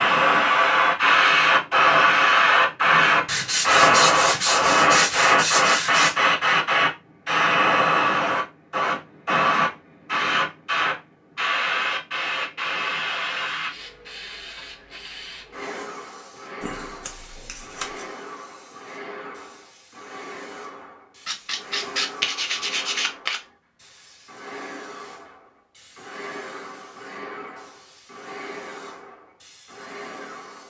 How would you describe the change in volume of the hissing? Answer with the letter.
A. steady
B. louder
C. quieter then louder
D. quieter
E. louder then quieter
D.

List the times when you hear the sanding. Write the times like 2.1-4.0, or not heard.
3.2-6.2, 16.6-18.1, 21.2-23.4.